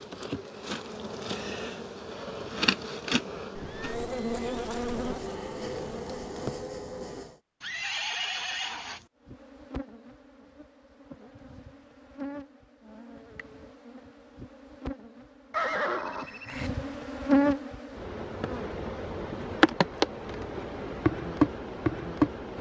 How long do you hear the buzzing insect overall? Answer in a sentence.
The buzzing insect can be heard for 21 seconds in total.